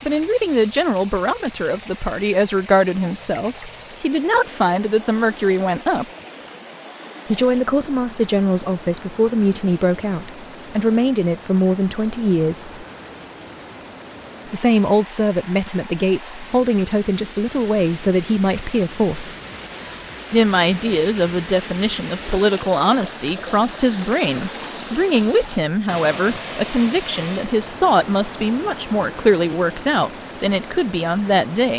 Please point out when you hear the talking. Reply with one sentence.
You can hear the talking from 0.0 to 6.0 s, from 7.3 to 12.8 s, from 14.5 to 19.3 s and from 20.3 to 31.7 s.